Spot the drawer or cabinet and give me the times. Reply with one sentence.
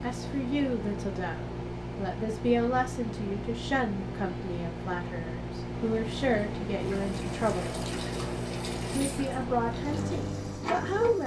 You can't hear the drawer or cabinet here.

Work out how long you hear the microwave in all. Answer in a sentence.
The microwave can be heard for 11 seconds in total.